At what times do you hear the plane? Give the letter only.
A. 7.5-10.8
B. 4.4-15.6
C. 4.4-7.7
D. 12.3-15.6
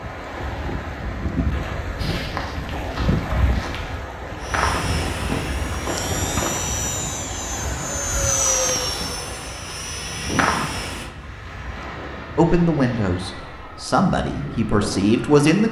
B.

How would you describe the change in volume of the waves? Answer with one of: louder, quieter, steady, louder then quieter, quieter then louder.
quieter.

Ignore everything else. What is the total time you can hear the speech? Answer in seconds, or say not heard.
3 s.